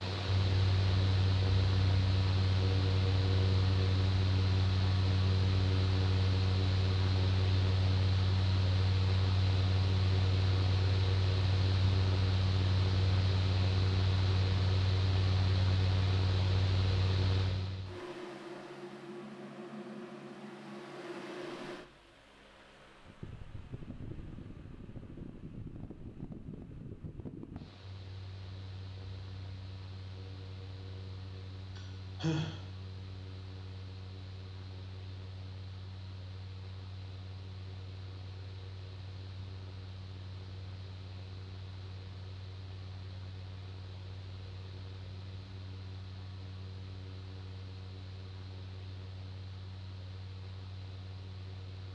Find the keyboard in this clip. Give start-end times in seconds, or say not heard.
not heard.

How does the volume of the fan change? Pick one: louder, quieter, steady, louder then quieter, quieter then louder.
quieter.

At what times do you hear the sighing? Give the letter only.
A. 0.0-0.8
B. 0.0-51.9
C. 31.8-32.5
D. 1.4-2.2
C.